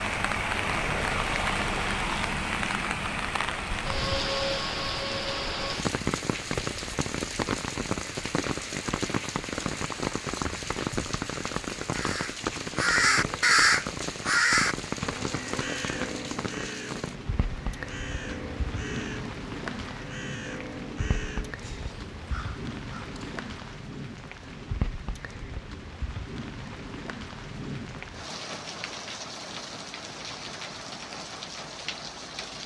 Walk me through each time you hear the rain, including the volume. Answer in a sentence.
The rain can be heard from 0.0 to 32.6 s, getting quieter.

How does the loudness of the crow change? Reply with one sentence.
The loudness of the crow goes down.